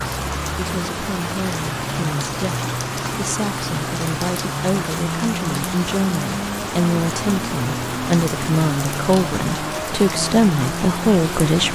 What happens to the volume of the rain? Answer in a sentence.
The volume of the rain stays about the same.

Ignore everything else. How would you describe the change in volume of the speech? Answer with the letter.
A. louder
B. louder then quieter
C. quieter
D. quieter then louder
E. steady
A.